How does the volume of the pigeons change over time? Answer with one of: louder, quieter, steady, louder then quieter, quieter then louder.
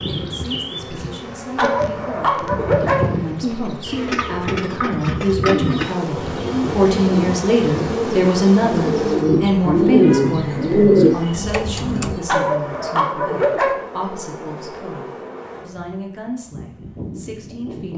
louder.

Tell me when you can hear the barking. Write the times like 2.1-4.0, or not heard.
1.6-3.0, 12.2-13.8.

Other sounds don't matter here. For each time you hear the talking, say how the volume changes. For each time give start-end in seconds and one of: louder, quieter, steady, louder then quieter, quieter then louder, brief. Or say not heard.
0.0-17.9 louder then quieter.